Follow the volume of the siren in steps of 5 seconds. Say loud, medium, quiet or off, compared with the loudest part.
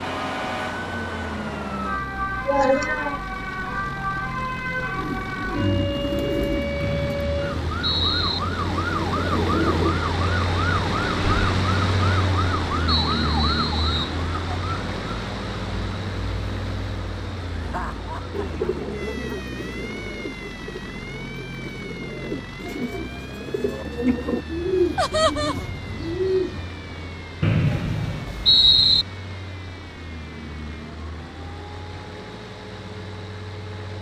loud, loud, loud, medium, quiet, quiet, quiet.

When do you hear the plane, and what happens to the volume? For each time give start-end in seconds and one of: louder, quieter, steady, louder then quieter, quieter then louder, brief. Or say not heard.
0.0-33.9 louder then quieter.